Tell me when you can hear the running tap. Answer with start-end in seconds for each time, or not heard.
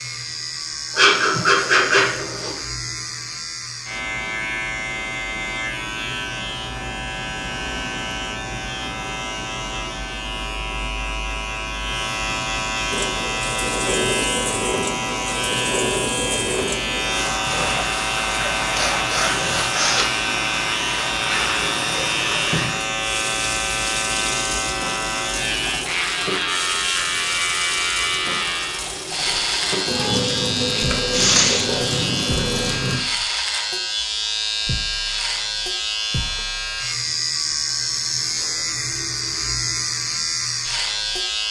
12.9-33.0.